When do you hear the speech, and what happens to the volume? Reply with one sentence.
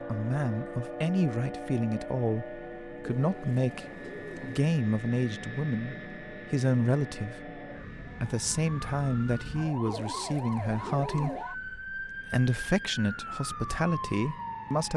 The speech can be heard from 0.1 to 14.9 s, at a steady volume.